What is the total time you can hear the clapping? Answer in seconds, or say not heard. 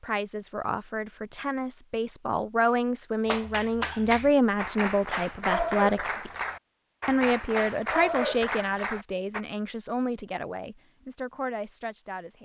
6 s.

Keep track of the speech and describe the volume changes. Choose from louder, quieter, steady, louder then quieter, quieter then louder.
louder then quieter.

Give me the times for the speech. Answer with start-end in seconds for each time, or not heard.
0.0-6.3, 7.0-12.4.